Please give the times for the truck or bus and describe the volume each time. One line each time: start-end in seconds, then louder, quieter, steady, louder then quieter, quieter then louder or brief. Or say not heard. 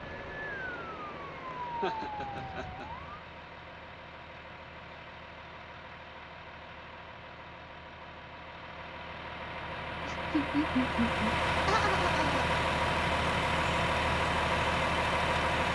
0.0-15.6 louder.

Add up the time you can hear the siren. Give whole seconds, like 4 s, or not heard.
3 s.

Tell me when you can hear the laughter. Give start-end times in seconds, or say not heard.
1.6-2.9, 10.1-12.4.